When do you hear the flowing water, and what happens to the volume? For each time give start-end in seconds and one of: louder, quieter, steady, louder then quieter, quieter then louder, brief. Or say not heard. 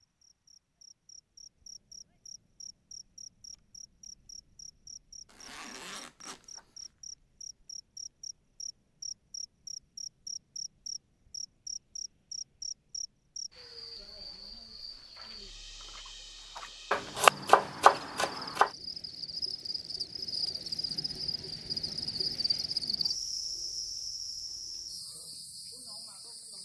not heard.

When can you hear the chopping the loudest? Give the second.
17 s.